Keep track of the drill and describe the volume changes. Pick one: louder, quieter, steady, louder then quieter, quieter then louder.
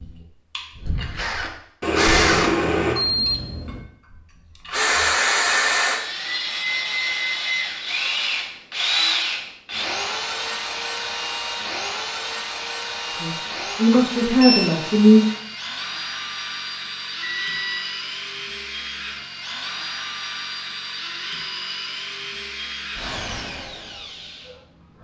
quieter.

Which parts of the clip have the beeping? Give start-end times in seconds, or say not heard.
1.8-3.8, 13.9-14.7, 17.2-17.9.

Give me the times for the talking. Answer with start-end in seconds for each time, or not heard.
13.1-15.2.